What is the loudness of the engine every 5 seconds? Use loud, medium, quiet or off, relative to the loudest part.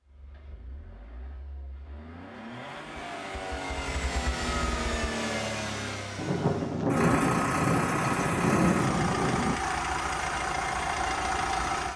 medium, loud, loud.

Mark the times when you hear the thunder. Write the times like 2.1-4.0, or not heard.
6.2-9.6.